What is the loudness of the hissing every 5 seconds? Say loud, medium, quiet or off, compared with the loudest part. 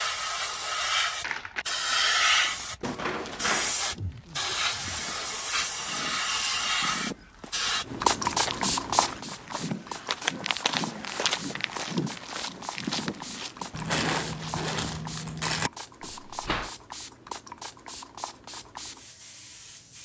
loud, loud, quiet, quiet.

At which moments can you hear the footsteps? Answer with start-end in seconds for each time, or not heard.
3.1-14.7.